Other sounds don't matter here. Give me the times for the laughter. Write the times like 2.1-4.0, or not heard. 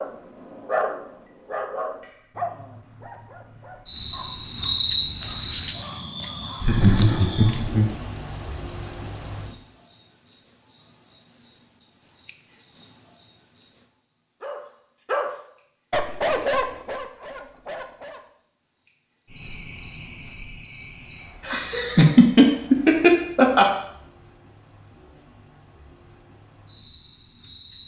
6.6-8.0, 21.4-23.7.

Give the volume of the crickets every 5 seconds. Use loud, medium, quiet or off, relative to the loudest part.
medium, loud, loud, quiet, quiet, quiet.